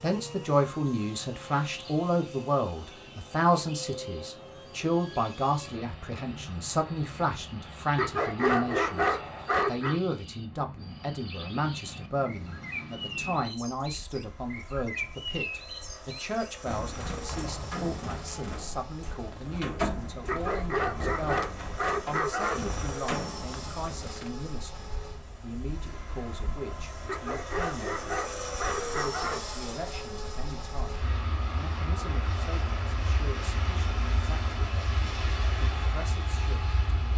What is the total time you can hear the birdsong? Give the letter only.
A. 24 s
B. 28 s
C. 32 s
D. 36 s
A.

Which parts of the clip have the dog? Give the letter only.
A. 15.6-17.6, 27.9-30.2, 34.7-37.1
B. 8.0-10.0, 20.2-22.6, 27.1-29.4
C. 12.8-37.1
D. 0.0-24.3
B.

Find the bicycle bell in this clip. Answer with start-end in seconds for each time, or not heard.
not heard.